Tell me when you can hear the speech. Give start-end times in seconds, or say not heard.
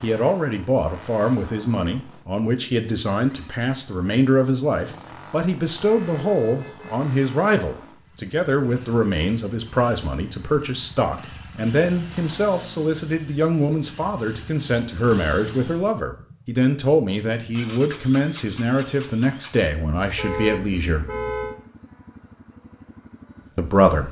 0.0-21.1, 23.6-24.0.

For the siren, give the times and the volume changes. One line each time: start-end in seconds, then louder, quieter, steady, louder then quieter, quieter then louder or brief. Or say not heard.
not heard.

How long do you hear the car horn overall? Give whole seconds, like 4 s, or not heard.
3 s.